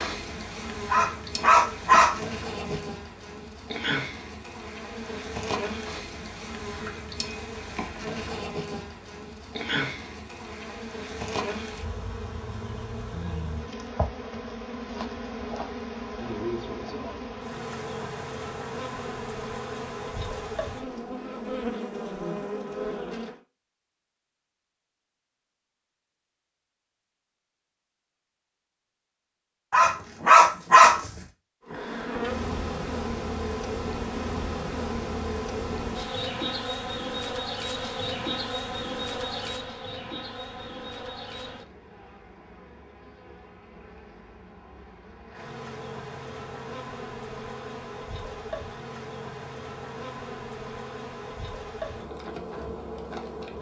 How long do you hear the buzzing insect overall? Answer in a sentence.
The buzzing insect can be heard for 45 seconds in total.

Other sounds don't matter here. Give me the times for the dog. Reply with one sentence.
The dog can be heard from 0.9 to 2.8 s and from 29.7 to 31.1 s.